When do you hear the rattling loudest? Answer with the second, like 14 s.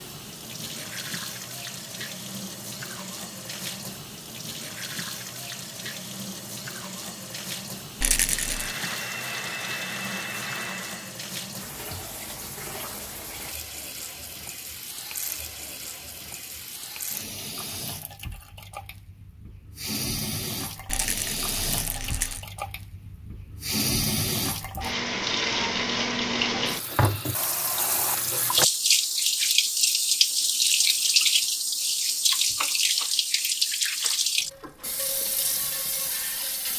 8 s.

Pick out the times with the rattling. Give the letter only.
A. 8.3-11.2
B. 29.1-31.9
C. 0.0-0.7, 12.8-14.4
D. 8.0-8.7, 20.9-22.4
D.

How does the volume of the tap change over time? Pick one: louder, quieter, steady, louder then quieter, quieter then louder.
louder.